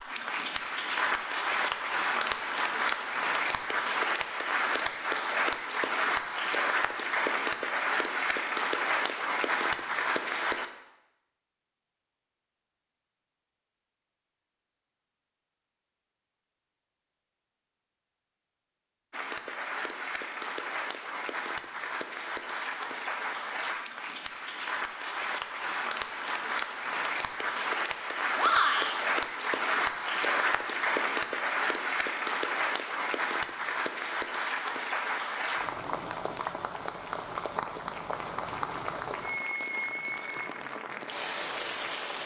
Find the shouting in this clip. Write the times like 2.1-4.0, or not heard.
28.4-28.9.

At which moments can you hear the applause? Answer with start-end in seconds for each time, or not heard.
0.0-10.7, 19.1-42.2.